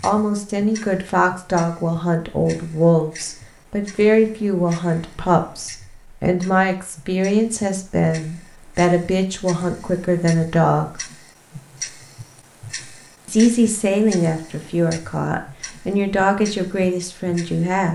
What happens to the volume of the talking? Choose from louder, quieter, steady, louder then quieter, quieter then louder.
steady.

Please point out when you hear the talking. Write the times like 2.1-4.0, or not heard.
0.0-11.0, 13.2-17.9.